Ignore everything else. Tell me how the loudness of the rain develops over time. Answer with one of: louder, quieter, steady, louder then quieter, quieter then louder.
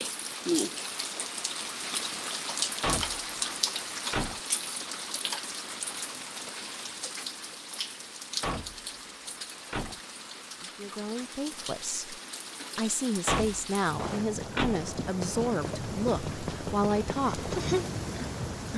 quieter then louder.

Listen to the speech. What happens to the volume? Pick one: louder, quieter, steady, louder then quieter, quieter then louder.
louder.